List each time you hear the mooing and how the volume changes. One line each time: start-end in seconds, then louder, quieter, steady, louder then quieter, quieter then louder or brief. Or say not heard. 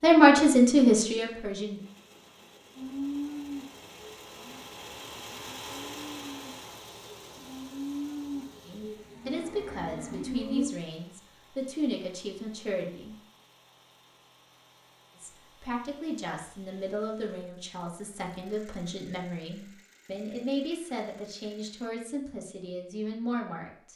2.8-10.8 quieter then louder.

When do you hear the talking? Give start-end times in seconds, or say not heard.
0.0-1.8, 8.7-13.2, 15.2-23.9.